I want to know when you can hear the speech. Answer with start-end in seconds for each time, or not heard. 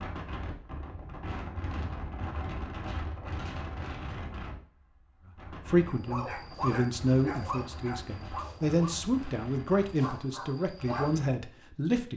5.7-12.1.